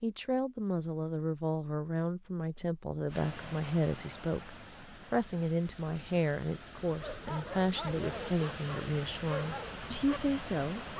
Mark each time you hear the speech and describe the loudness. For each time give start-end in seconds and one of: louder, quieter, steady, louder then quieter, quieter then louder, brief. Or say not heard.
0.0-10.9 steady.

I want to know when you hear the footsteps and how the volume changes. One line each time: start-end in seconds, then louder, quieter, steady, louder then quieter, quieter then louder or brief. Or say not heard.
not heard.